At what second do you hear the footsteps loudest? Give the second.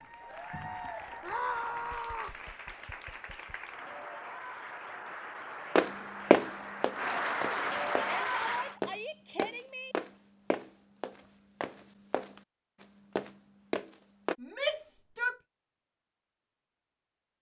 6 s.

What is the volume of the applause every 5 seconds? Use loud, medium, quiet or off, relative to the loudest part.
medium, loud, off, off.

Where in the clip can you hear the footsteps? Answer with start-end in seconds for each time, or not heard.
5.8-14.3.